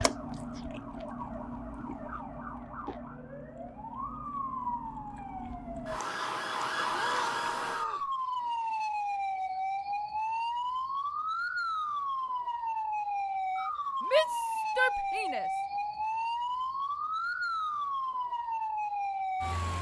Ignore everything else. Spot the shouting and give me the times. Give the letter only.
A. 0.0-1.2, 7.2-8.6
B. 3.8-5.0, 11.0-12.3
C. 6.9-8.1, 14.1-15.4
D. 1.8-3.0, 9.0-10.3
C.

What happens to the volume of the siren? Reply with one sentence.
The loudness of the siren goes up.